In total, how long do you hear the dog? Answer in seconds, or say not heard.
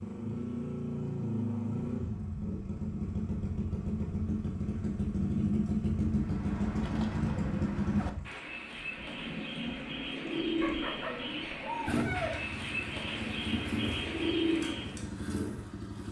2 s.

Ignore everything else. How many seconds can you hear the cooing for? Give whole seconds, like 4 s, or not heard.
9 s.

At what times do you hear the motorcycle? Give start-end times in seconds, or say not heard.
0.0-16.0.